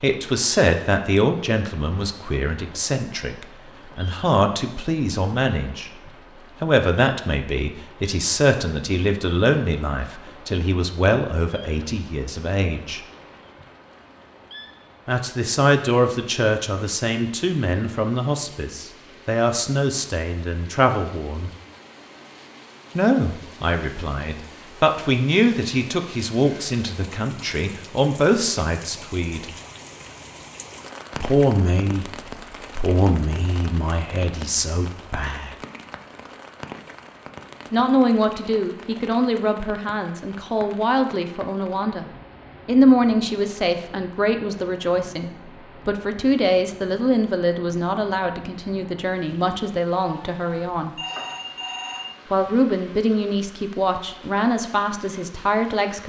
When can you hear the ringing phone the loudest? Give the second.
51 s.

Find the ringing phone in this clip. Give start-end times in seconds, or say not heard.
50.8-52.5.